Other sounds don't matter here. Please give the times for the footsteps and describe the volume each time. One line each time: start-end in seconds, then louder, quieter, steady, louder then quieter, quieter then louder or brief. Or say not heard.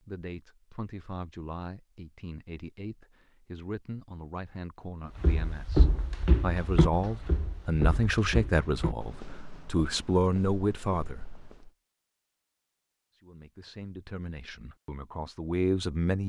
5.2-11.7 quieter.